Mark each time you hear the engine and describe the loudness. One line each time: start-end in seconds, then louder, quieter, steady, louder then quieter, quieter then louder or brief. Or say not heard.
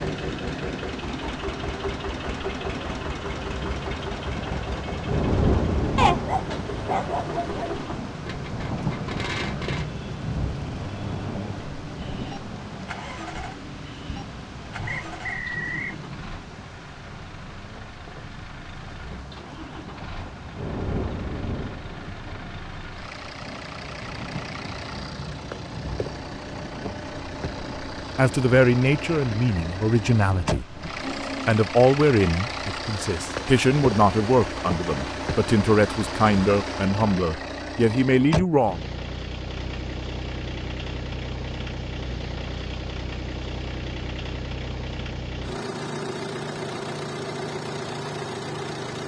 0.0-49.0 quieter then louder.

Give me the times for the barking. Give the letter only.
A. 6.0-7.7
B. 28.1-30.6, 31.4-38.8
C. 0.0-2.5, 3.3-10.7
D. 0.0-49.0
A.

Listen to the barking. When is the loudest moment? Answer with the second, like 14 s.
6 s.